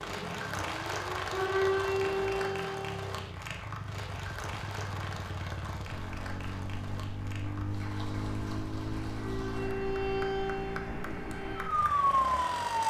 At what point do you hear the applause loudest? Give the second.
1 s.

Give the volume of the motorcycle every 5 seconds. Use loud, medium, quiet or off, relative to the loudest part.
medium, loud, loud.